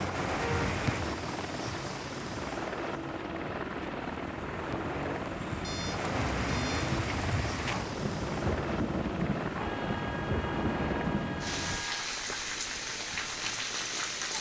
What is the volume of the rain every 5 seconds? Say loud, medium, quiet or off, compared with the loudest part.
medium, loud, loud.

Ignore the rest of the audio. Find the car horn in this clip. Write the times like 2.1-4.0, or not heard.
0.3-0.8, 5.6-6.9, 9.6-12.1.